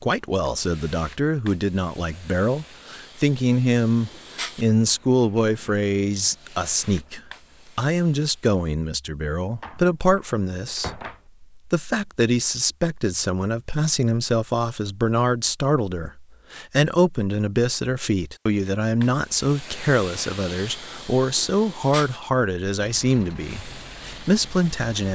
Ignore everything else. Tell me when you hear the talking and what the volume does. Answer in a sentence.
The talking can be heard from 0.0 to 25.0 s, at a steady volume.